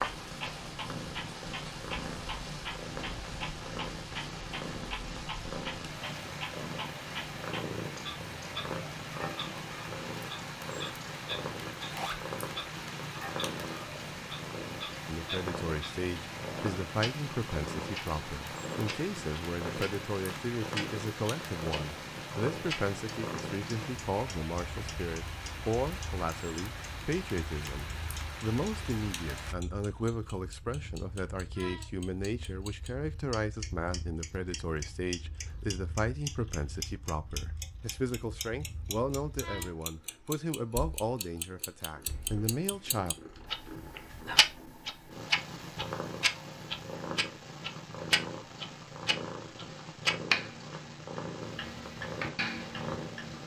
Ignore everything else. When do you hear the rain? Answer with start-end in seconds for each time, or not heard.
0.0-29.6.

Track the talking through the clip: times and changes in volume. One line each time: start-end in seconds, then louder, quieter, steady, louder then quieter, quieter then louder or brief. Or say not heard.
15.1-43.1 steady.